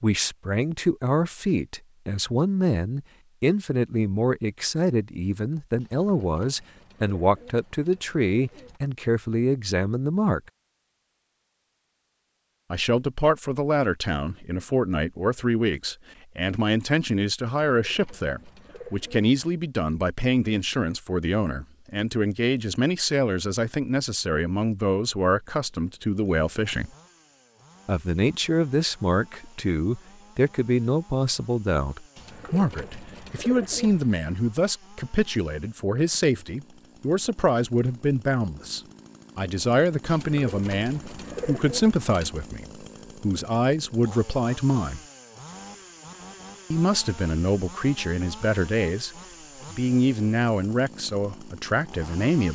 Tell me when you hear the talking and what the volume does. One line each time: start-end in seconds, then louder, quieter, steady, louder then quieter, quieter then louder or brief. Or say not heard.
0.0-10.4 steady
12.7-26.9 steady
27.9-45.0 steady
46.7-49.1 brief
49.7-52.5 brief.